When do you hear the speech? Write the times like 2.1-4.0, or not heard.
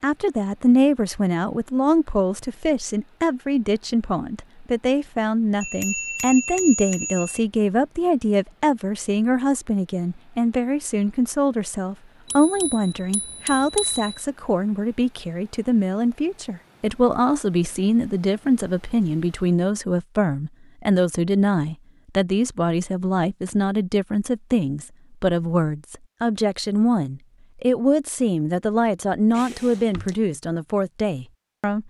0.0-31.8.